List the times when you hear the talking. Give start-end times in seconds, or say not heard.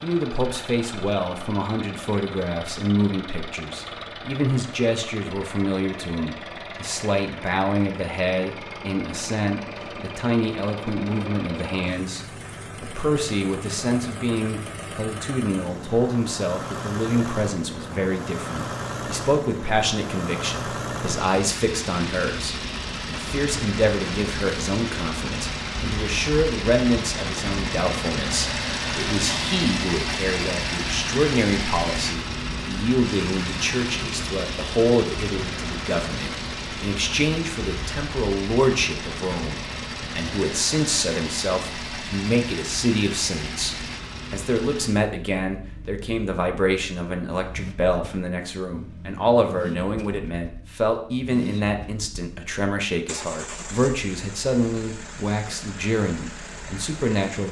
0.0-57.4.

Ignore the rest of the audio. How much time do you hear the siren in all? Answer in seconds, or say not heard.
not heard.